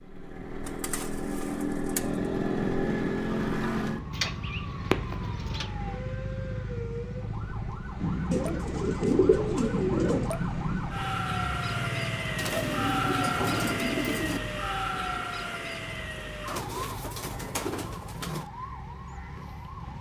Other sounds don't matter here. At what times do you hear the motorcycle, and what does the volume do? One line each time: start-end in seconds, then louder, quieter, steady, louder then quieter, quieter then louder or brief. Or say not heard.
0.0-19.9 quieter.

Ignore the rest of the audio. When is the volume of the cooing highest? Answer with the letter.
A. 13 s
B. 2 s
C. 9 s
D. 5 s
C.